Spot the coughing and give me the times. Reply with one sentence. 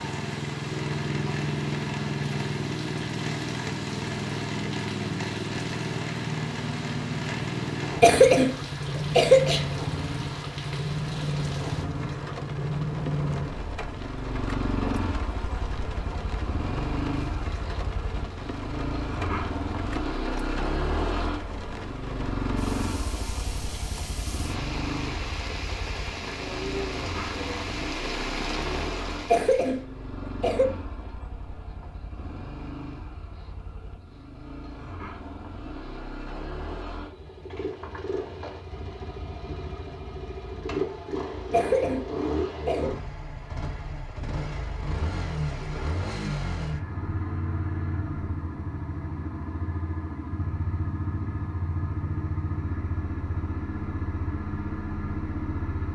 The coughing can be heard from 8.0 to 9.7 s, from 29.3 to 30.6 s and from 41.5 to 42.9 s.